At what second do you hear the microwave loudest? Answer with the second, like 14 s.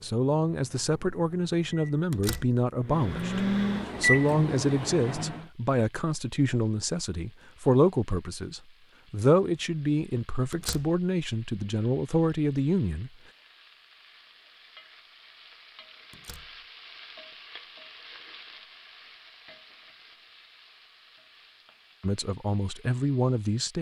4 s.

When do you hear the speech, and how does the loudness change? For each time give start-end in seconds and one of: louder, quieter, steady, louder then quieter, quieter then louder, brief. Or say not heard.
0.0-13.1 steady
22.0-23.7 brief.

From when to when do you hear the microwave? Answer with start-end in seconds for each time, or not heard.
0.0-5.5.